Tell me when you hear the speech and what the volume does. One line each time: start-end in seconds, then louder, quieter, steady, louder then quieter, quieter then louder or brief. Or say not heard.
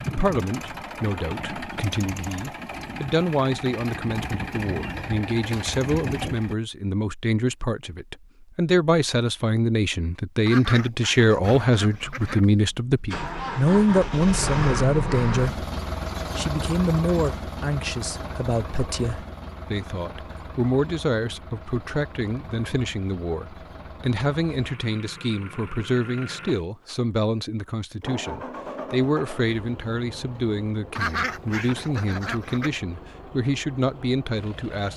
0.1-15.6 louder
16.4-34.9 steady.